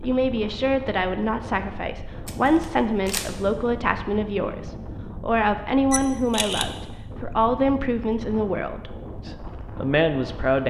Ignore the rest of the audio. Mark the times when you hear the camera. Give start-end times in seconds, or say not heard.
2.2-3.4, 5.9-6.8.